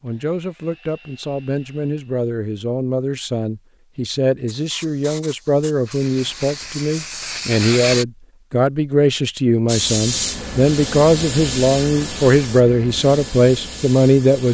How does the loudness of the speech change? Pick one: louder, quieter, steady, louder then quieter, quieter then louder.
louder.